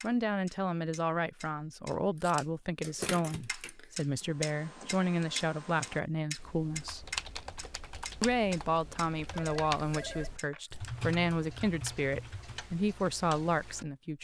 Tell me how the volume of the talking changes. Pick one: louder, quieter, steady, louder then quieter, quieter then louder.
steady.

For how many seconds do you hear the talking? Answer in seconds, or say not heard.
13 s.